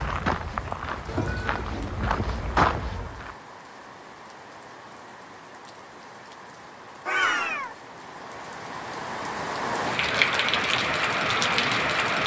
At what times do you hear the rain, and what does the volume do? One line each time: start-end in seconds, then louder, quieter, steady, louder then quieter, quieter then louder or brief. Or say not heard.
0.2-12.2 louder.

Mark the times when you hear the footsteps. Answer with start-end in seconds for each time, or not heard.
0.0-3.4.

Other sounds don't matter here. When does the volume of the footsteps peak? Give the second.
3 s.